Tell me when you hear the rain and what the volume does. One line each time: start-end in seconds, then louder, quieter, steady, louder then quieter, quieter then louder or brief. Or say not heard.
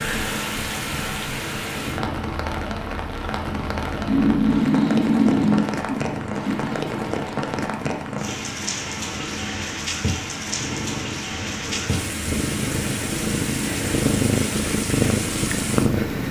0.0-16.2 steady.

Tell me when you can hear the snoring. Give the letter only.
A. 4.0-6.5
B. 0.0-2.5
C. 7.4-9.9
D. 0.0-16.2
A.